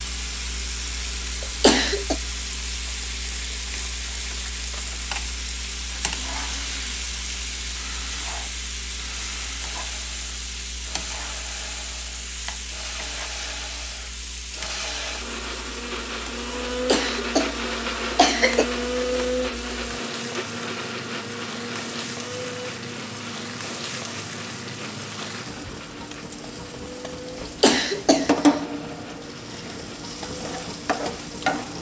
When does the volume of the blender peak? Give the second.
19 s.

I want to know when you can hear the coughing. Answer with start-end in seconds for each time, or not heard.
1.4-2.1, 16.9-18.6, 27.4-28.6.